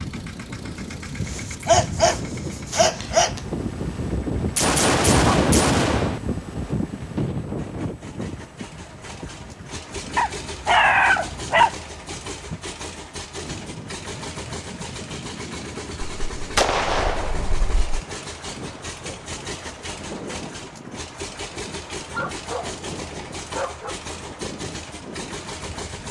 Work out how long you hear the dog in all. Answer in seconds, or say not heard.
6 s.